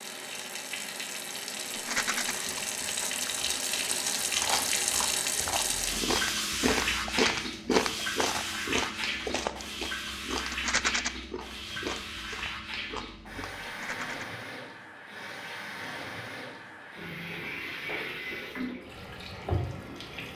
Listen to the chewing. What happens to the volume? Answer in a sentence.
The volume of the chewing goes up, then down.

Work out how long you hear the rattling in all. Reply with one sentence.
The rattling can be heard for 2 seconds in total.